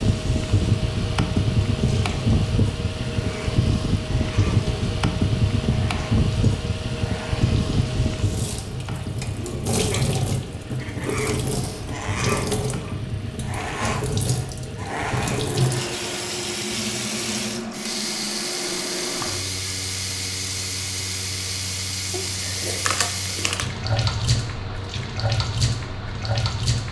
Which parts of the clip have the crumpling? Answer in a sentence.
The crumpling can be heard from 22.1 to 23.7 s.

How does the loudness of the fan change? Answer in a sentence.
The loudness of the fan goes down.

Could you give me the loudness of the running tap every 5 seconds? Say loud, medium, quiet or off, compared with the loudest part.
medium, medium, loud, loud, loud, loud.